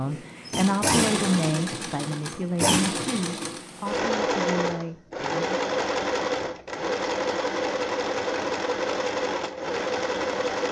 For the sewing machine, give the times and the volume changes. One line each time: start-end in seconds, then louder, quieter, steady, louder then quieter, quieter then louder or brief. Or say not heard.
0.0-10.6 steady.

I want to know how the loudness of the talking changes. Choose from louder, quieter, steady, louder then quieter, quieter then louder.
quieter.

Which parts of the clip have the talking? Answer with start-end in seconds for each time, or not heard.
0.0-5.6.